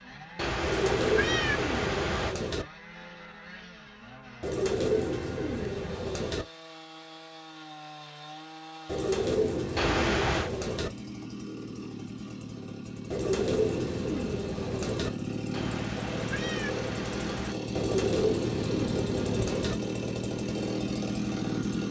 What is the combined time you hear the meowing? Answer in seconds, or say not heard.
5 s.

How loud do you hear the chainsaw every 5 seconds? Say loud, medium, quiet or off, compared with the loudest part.
quiet, quiet, medium, loud, loud.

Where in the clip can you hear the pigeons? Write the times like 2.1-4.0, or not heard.
0.6-2.6, 4.4-6.5, 8.8-10.9, 13.1-15.1, 17.8-19.8.